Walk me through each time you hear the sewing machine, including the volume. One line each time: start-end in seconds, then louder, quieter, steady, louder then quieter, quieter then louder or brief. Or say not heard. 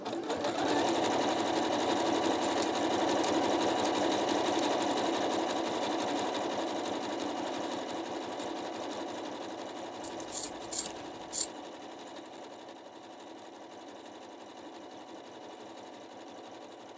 0.0-16.9 quieter.